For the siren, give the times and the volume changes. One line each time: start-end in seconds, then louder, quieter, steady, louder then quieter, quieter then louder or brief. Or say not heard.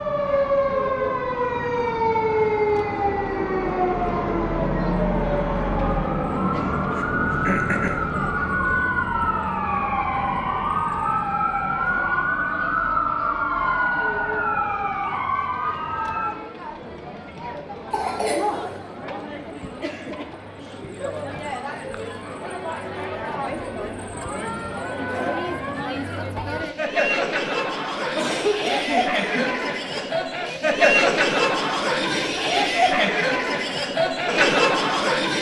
0.0-16.4 steady.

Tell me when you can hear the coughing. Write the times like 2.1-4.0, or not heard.
6.9-8.1, 17.9-18.7, 28.1-30.1.